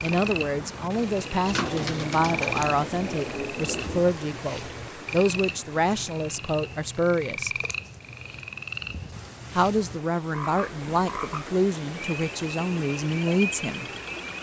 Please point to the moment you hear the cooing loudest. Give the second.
2 s.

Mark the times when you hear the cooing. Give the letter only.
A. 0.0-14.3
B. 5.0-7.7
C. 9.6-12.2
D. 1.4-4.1
D.